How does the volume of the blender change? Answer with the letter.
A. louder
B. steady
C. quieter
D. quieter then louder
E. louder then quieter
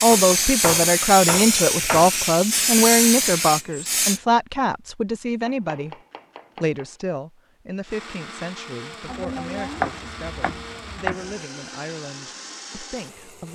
B.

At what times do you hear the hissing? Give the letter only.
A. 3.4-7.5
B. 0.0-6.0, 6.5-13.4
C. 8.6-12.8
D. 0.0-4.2
D.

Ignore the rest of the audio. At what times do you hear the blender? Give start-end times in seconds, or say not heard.
7.8-13.4.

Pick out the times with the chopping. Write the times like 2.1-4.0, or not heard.
0.1-2.1, 5.5-7.0, 9.1-11.3.